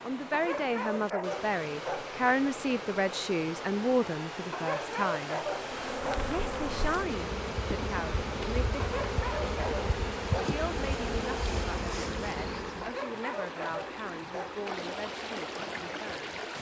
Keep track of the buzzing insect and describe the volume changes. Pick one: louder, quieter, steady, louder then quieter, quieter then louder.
steady.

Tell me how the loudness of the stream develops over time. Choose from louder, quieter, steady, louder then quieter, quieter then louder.
steady.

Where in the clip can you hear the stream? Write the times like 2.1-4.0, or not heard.
0.0-16.5.